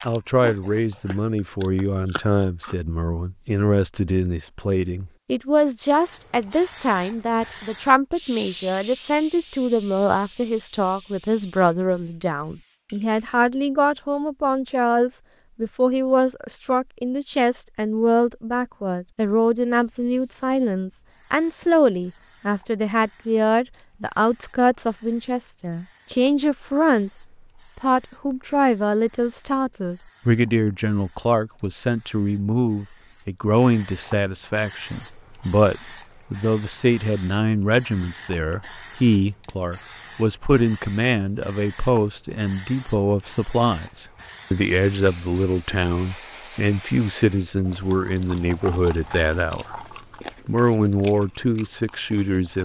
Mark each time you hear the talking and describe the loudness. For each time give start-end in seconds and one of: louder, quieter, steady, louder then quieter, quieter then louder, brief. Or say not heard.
0.0-49.8 steady
50.5-52.6 brief.